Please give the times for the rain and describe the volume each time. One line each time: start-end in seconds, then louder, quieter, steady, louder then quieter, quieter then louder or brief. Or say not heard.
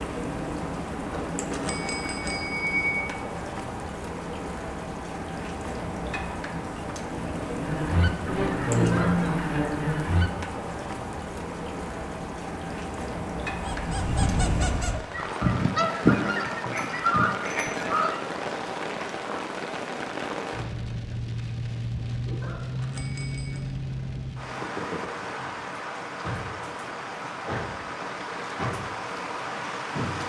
0.0-30.2 steady.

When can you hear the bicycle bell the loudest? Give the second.
3 s.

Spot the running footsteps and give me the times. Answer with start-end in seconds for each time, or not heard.
not heard.